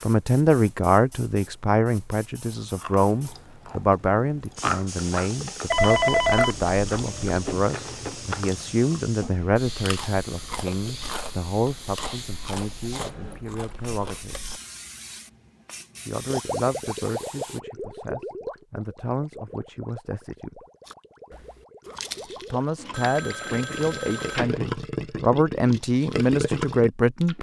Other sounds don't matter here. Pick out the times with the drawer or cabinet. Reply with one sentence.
The drawer or cabinet can't be heard in this clip.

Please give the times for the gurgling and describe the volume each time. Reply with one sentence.
You can hear the gurgling from 16.3 to 26.9 s, getting quieter then louder.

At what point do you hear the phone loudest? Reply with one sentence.
The loudest moment of the phone is at 6 seconds.